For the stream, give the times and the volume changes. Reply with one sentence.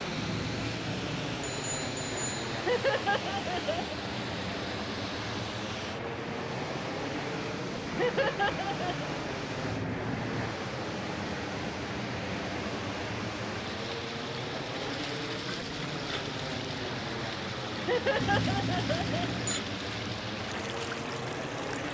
The stream can be heard from 0.0 to 21.8 s, at a steady volume.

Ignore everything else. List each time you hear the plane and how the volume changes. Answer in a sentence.
You can hear the plane from 0.0 to 21.8 s, at a steady volume.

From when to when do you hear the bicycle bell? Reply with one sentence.
You can hear the bicycle bell from 0.1 to 2.3 s, from 9.6 to 10.6 s and from 18.2 to 19.6 s.